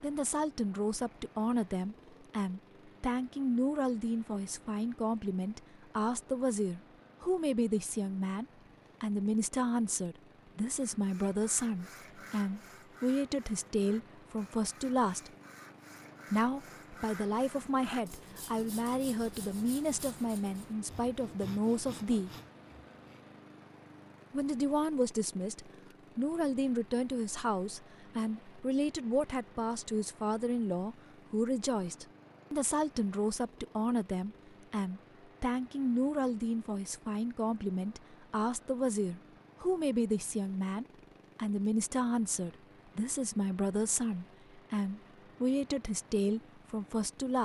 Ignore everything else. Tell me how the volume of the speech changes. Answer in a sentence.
The loudness of the speech stays about the same.